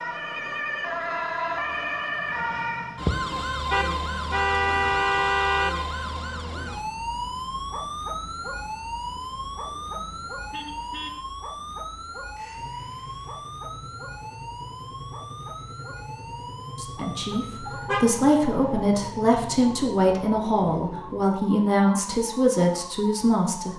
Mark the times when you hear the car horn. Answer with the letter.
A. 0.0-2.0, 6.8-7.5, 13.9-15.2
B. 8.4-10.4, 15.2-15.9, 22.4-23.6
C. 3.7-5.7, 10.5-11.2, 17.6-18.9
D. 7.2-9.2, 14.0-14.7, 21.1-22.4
C.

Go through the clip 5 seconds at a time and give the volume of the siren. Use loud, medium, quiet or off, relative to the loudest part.
loud, loud, medium, medium, medium.